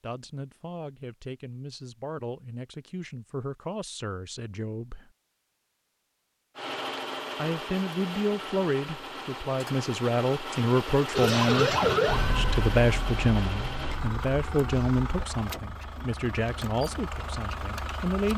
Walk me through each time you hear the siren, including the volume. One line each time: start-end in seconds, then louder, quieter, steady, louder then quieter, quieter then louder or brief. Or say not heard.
11.1-15.2 quieter.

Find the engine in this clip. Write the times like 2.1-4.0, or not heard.
6.5-18.3.